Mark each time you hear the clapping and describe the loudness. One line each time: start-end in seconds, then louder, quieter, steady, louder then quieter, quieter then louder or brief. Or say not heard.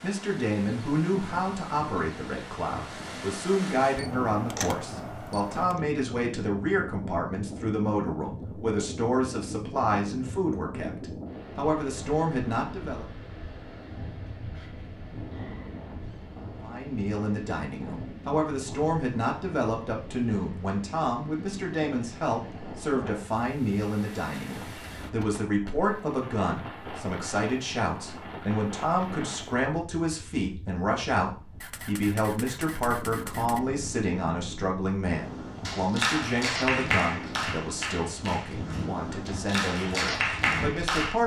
35.6-41.1 quieter then louder.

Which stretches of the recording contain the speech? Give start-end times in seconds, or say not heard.
0.0-13.1, 16.6-41.2.